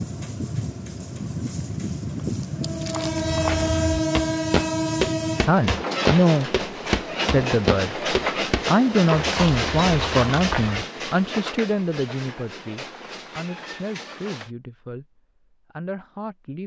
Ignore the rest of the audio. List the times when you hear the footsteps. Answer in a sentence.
You can hear the footsteps from 3.0 to 10.8 s.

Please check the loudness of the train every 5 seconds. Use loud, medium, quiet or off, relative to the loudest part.
loud, loud, medium, off.